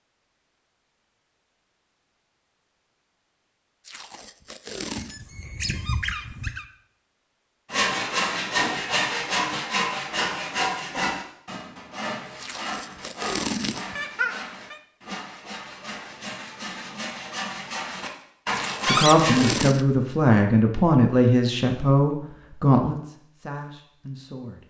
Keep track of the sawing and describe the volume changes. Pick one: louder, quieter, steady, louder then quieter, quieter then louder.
quieter then louder.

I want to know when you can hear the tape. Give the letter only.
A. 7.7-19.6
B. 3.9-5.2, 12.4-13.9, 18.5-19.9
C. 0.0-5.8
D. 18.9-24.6
B.